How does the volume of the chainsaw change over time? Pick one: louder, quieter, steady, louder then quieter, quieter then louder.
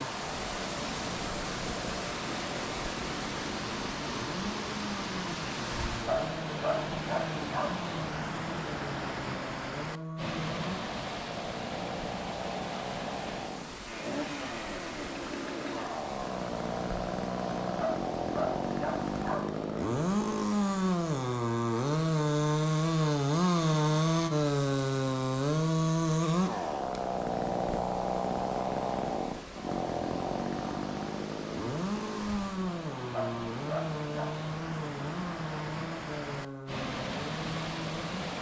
louder then quieter.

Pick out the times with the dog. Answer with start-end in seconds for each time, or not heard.
5.9-7.7, 17.6-19.4, 33.0-34.3.